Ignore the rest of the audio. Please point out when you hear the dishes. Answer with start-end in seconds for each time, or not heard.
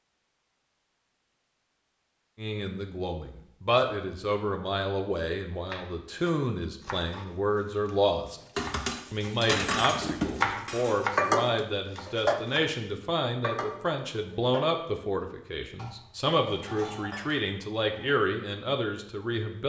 8.6-18.1.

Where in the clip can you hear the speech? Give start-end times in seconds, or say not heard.
2.4-8.4, 9.1-19.6.